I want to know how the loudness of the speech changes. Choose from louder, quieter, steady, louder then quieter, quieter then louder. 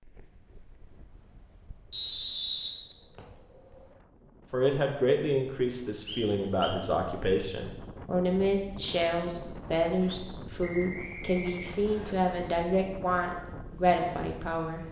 steady.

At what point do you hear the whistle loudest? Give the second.
2 s.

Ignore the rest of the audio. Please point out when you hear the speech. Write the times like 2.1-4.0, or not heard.
4.5-14.8.